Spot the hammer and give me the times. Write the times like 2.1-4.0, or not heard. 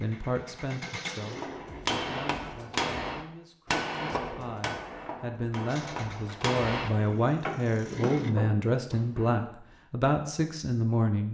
1.2-9.3.